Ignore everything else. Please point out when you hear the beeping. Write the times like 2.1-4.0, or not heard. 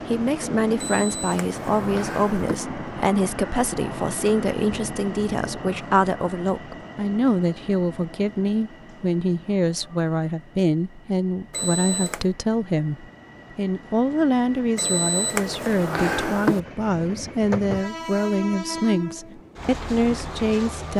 0.8-2.6, 11.5-12.3, 14.8-16.6.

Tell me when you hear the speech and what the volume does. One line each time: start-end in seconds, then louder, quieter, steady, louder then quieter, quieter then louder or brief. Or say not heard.
0.1-20.9 steady.